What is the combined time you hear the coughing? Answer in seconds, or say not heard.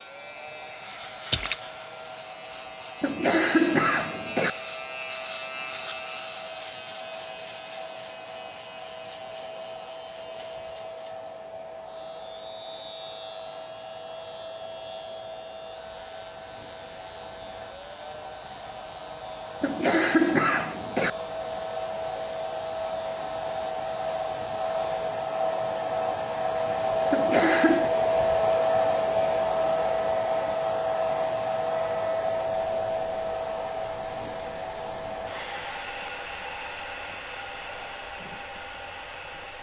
4 s.